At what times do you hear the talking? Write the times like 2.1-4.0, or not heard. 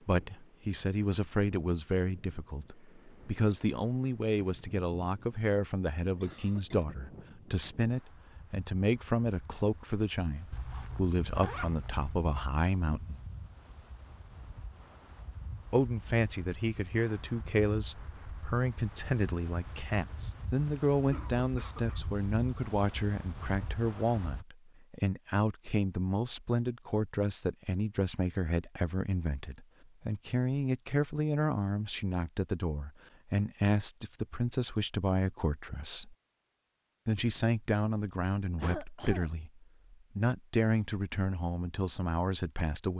0.1-13.2, 15.7-36.1, 37.0-42.9.